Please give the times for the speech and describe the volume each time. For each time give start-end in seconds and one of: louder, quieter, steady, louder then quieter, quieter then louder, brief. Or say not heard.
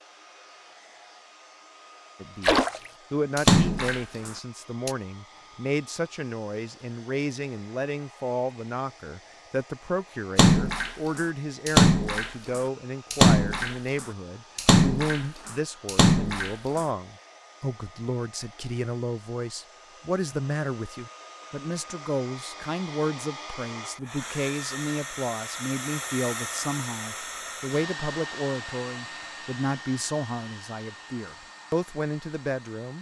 2.2-32.9 steady.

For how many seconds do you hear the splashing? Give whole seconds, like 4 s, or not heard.
9 s.